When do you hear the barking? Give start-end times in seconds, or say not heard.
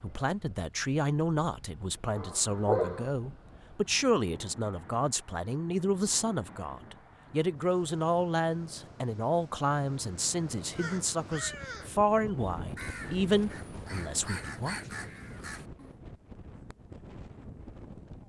2.1-3.1.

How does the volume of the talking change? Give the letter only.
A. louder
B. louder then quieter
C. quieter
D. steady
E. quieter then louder
D.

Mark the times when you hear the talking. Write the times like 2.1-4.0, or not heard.
0.0-14.8.